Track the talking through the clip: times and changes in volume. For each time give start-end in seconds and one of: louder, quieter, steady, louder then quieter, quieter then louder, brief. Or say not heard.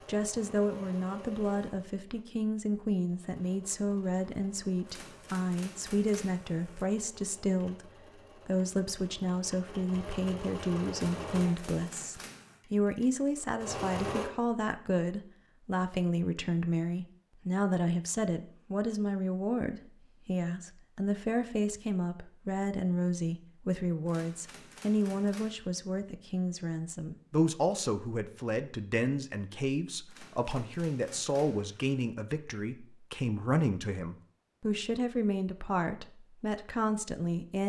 0.1-37.6 steady.